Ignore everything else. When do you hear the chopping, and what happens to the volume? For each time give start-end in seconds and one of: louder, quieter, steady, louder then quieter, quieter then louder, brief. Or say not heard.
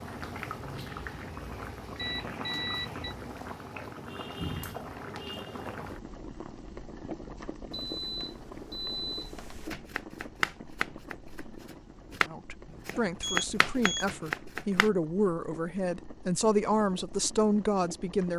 9.7-14.9 quieter then louder.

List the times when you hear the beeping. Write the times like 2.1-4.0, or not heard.
1.9-3.1, 7.7-9.7, 13.2-14.1.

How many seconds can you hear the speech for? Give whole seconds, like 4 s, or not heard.
6 s.